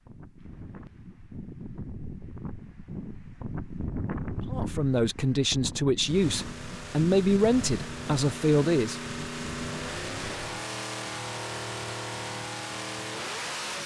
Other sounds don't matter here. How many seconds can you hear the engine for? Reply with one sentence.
You can hear the engine for 8 seconds altogether.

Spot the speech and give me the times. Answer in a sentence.
The speech can be heard from 4.4 to 9.0 s.